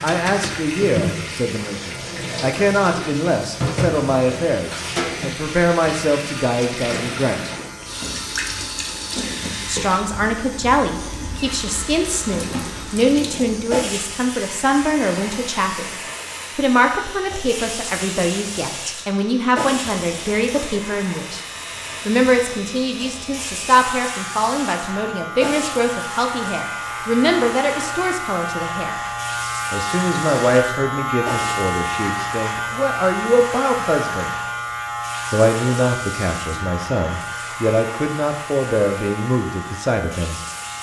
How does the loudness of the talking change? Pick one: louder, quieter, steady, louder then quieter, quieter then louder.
steady.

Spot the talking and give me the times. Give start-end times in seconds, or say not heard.
0.0-7.5, 9.7-15.9, 16.6-21.4, 22.1-28.9, 29.7-34.3, 35.3-40.4.